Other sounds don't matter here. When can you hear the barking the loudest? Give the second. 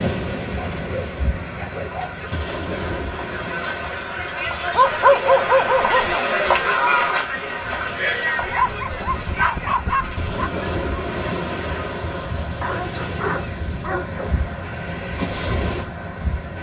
5 s.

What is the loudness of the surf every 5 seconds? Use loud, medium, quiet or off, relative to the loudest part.
loud, quiet, loud, loud.